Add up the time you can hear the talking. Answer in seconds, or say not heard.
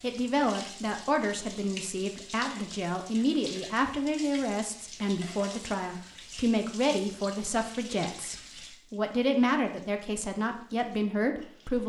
12 s.